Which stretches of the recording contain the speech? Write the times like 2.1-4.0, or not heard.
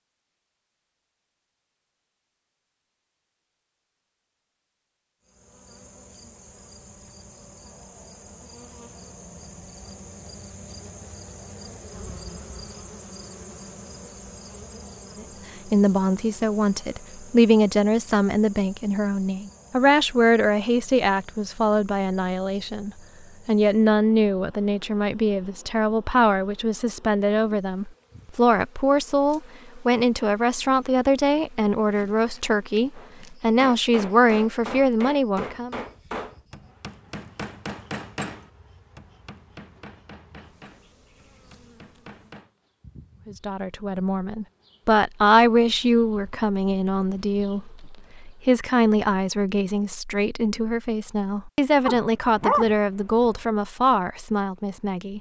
15.2-35.8, 43.2-55.1.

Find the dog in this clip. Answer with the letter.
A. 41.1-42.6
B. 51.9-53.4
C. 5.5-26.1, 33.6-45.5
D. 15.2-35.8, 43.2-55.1
B.